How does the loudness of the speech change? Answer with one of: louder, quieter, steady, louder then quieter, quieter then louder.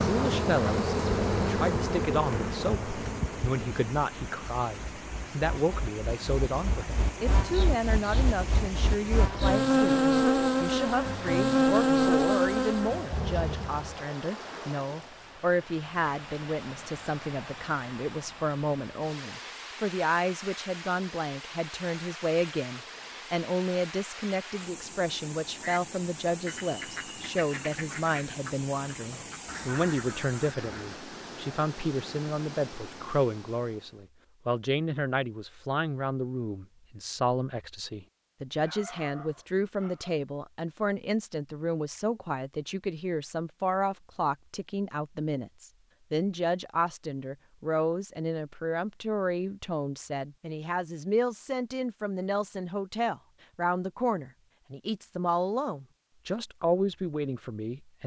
steady.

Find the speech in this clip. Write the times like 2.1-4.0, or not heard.
0.1-58.0.